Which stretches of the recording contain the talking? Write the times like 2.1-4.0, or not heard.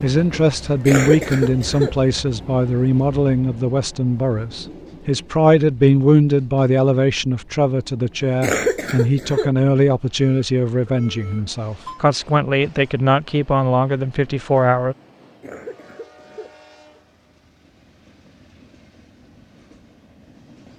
0.0-14.9.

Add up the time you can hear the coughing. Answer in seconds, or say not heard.
4 s.